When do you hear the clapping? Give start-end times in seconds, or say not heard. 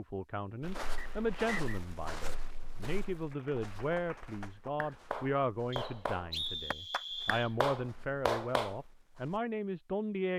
3.1-8.8.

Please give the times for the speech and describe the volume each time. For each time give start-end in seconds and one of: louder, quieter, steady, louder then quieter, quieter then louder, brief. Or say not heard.
0.0-10.3 steady.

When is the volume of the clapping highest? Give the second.
8 s.